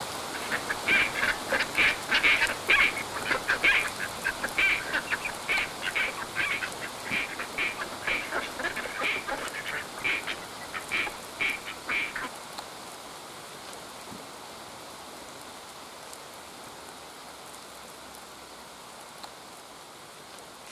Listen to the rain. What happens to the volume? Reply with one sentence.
The loudness of the rain goes down.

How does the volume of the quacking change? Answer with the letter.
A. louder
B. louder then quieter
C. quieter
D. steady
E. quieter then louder
C.